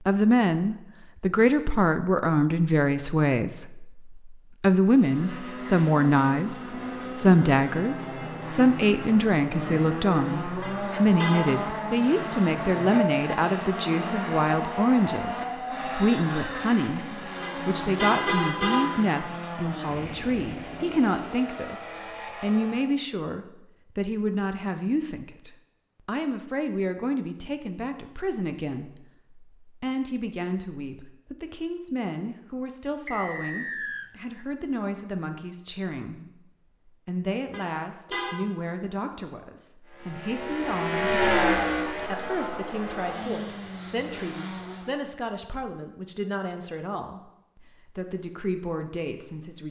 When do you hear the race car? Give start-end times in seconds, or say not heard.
4.8-22.9, 39.9-45.0.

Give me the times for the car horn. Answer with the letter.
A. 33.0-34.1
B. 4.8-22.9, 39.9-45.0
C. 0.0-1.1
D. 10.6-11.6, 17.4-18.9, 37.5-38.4
D.